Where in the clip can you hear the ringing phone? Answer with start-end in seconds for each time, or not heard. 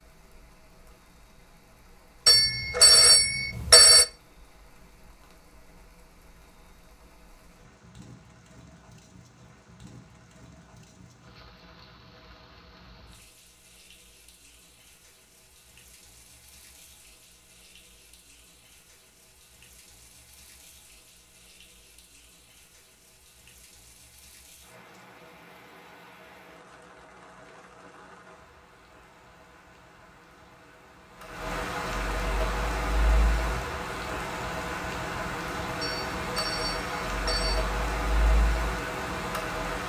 2.2-4.0, 35.8-37.6.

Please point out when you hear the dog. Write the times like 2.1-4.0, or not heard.
not heard.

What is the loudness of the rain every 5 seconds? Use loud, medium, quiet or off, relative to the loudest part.
quiet, quiet, quiet, quiet, quiet, quiet, loud, loud.